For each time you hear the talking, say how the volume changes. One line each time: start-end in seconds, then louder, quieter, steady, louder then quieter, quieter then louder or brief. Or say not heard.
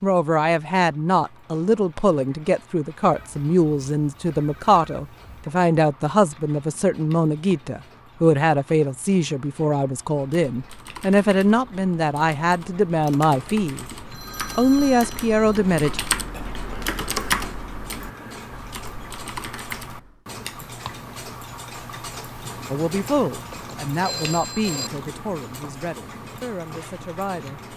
0.0-13.8 steady
14.6-16.0 brief
22.7-27.6 quieter.